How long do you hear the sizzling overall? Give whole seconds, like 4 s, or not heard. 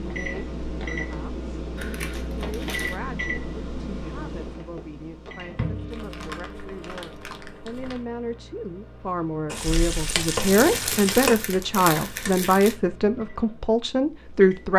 3 s.